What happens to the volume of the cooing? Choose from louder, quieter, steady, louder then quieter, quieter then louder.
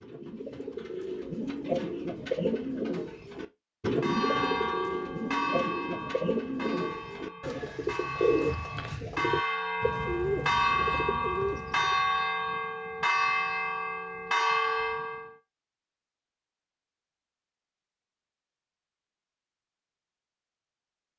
steady.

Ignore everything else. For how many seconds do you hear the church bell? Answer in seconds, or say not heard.
11 s.